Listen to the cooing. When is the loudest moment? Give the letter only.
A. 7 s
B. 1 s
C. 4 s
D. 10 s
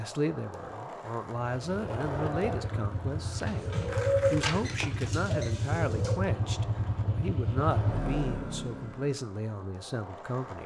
C.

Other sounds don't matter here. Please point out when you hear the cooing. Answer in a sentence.
You can hear the cooing from 3.5 to 6.2 s.